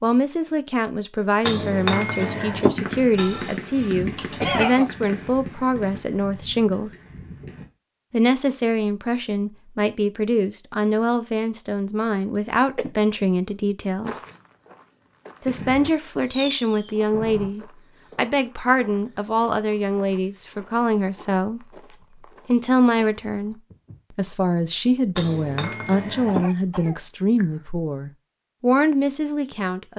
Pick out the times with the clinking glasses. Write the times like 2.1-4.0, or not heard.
1.4-2.7, 25.1-26.4.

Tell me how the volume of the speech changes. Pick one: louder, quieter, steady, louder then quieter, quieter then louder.
steady.